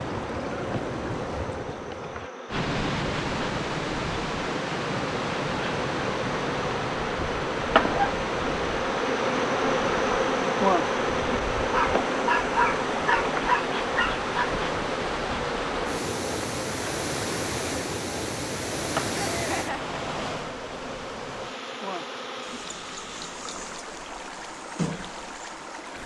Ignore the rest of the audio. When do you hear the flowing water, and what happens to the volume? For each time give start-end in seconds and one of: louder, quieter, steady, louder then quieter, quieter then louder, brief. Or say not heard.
0.0-26.0 quieter.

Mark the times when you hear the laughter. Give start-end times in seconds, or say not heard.
19.1-19.9.